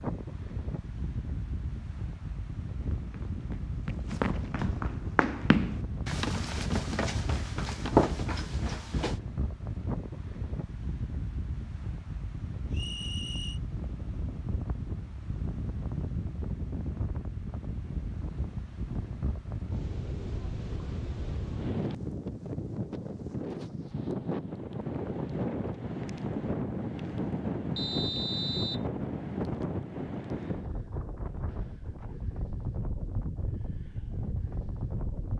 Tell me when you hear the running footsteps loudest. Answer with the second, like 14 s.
8 s.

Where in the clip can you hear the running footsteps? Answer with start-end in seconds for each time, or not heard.
3.0-9.2.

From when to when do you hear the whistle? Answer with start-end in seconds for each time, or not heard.
12.7-13.6, 27.8-28.9.